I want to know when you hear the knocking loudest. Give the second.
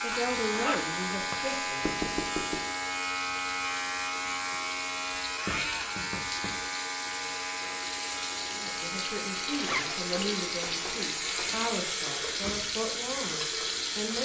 2 s.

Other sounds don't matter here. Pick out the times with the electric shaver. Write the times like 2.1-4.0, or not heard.
0.0-14.2.